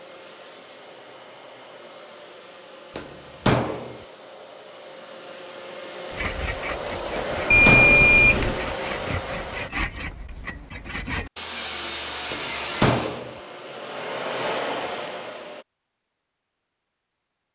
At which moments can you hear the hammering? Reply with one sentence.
The hammering can be heard from 3.0 to 4.0 s, from 7.2 to 8.1 s and from 12.3 to 13.3 s.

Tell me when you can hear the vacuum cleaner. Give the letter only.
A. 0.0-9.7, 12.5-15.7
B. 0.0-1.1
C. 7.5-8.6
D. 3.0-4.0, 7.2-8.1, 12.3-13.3
A.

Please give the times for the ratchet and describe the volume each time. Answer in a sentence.
You can't hear the ratchet here.